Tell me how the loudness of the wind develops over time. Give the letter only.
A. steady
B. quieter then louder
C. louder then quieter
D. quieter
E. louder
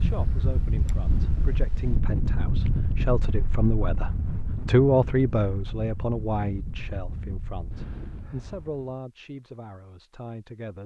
D.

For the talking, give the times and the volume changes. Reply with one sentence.
You can hear the talking from 0.0 to 10.8 s, getting louder then quieter.